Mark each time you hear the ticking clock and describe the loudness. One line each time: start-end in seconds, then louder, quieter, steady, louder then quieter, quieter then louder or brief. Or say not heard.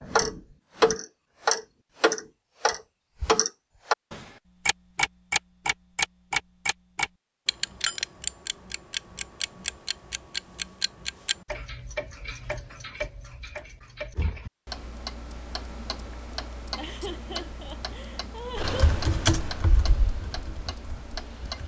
0.0-21.6 quieter.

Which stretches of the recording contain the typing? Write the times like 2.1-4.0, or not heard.
18.6-21.6.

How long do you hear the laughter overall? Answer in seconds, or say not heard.
2 s.